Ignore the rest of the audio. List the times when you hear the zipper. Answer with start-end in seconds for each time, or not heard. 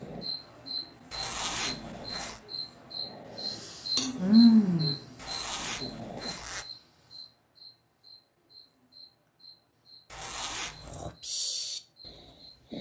1.1-2.4, 5.2-6.7, 10.1-11.1.